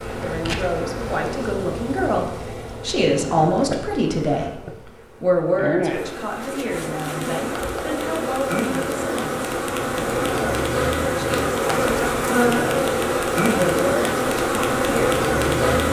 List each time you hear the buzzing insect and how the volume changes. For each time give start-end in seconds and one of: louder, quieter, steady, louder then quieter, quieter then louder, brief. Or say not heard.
0.0-15.8 louder.